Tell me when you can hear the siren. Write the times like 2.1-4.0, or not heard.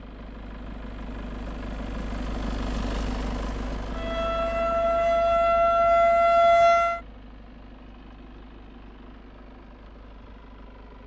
3.9-7.0.